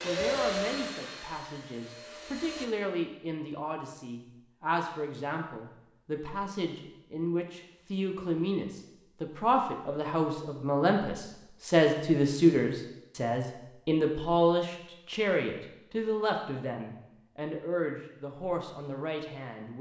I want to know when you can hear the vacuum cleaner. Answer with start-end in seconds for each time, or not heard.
0.0-2.7.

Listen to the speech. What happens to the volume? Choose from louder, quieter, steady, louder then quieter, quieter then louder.
louder then quieter.